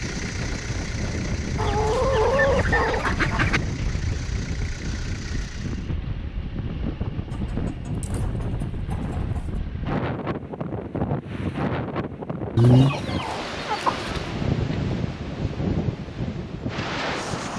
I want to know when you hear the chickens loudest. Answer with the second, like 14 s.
13 s.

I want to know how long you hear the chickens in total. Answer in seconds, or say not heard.
6 s.